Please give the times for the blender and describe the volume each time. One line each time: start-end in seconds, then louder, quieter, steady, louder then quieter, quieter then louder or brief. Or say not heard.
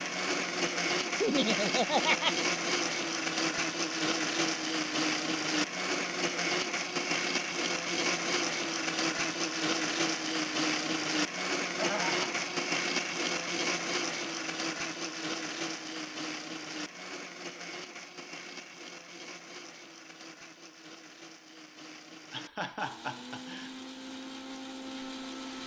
0.0-25.6 quieter.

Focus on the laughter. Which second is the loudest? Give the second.
2 s.